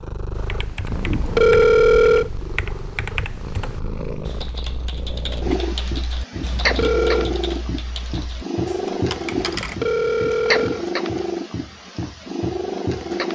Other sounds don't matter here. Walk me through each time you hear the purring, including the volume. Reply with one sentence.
You can hear the purring from 0.0 to 13.3 s, getting louder.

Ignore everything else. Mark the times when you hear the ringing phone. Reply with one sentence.
You can hear the ringing phone from 0.9 to 2.3 s, from 6.3 to 7.3 s and from 9.3 to 10.8 s.